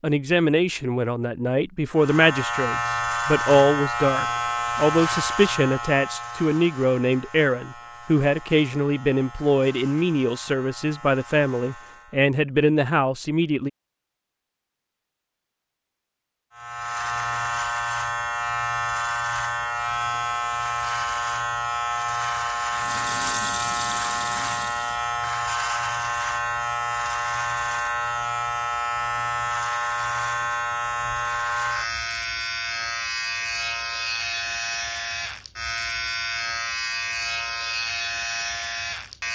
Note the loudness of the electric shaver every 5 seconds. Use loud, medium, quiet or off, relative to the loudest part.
loud, medium, quiet, loud, loud, loud, loud, loud.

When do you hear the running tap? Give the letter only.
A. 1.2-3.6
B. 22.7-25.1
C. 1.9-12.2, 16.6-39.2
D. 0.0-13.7
B.